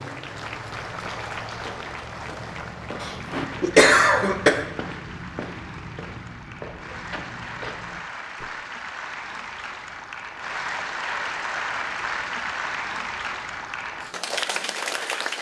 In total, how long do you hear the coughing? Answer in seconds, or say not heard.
2 s.